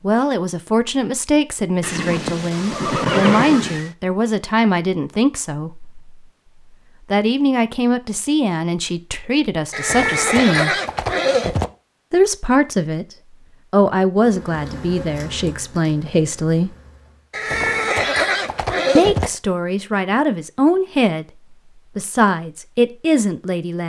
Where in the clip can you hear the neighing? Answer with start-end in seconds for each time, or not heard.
1.8-3.9, 9.7-11.7, 17.3-19.3.